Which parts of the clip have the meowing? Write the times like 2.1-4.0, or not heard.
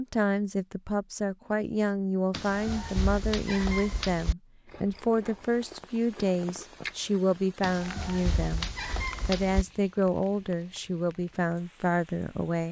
2.3-4.3, 7.6-9.7.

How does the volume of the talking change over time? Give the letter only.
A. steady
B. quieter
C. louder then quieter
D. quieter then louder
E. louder
A.